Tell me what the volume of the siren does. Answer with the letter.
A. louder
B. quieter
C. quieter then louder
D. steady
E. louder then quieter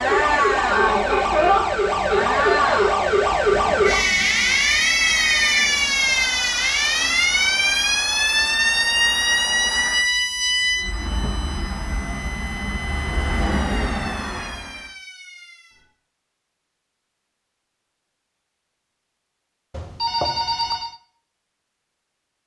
B.